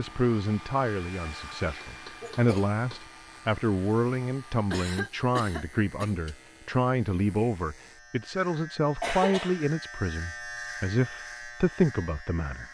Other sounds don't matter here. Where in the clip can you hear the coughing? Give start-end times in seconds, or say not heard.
1.6-2.7, 4.7-6.2, 9.0-9.7.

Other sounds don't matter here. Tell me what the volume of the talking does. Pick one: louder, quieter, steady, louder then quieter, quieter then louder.
steady.